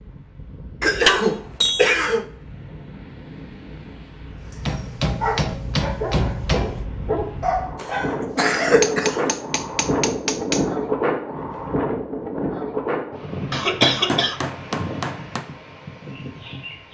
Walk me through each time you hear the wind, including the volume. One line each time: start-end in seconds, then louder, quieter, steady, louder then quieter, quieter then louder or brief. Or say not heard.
0.0-16.9 louder then quieter.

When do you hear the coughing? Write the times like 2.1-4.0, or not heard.
0.8-2.2, 7.8-9.3, 13.5-14.4.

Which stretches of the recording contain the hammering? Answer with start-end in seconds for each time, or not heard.
1.1-2.0, 4.6-6.8, 8.8-10.7, 13.8-15.4.